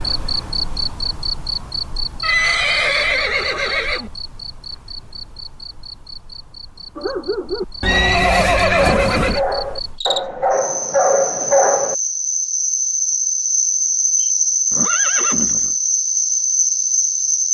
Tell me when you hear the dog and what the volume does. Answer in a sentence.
The dog can be heard from 7.0 to 11.9 s, getting louder.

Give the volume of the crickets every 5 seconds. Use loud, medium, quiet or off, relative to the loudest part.
medium, quiet, loud, loud.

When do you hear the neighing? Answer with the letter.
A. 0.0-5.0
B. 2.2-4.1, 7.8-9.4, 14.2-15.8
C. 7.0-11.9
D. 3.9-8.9
B.